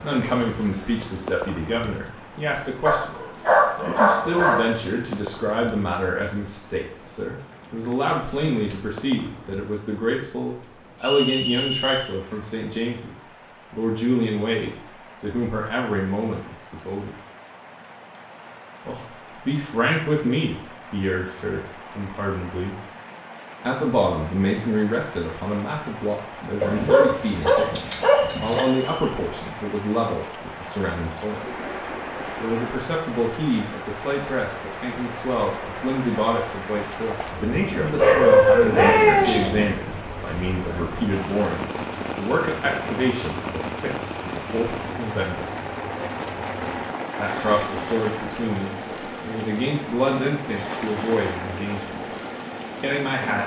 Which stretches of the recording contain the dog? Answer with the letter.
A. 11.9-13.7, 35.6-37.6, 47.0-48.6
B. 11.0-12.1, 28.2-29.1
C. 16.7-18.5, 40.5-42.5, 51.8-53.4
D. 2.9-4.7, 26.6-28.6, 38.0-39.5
D.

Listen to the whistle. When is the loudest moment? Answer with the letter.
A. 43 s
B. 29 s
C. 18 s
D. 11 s
D.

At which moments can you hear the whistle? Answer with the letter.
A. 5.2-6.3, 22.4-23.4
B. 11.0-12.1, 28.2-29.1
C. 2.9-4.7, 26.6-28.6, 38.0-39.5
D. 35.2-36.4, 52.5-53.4
B.